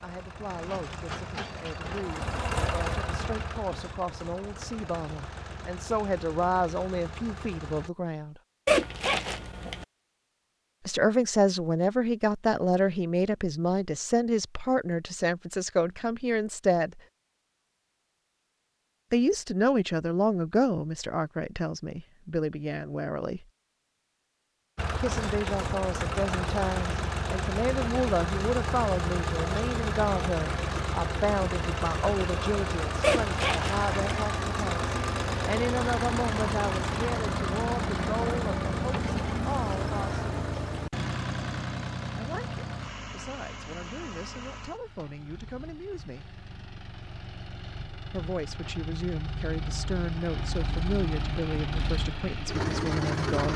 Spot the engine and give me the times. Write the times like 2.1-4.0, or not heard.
0.0-7.9, 24.8-53.5.